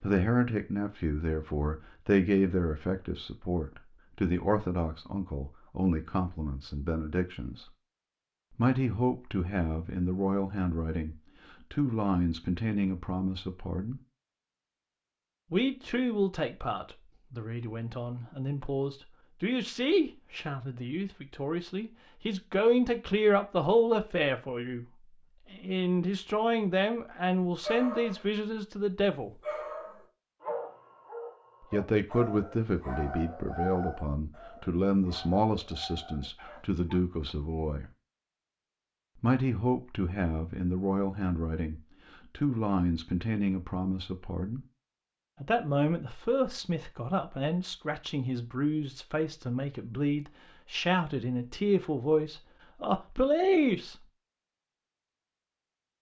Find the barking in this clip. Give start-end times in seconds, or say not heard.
27.4-28.2, 29.2-37.0.